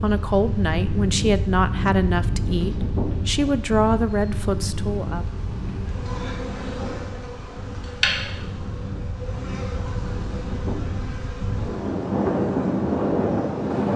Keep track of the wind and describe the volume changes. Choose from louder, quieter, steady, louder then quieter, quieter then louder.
quieter then louder.